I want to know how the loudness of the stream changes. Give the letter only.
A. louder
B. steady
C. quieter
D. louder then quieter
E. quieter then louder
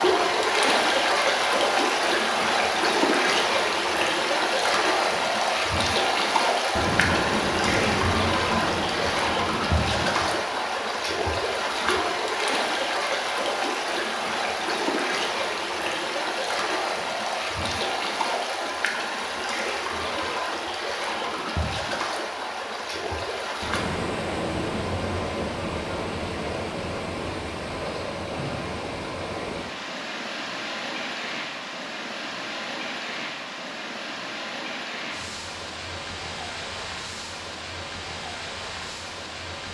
C.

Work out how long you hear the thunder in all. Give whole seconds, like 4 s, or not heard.
7 s.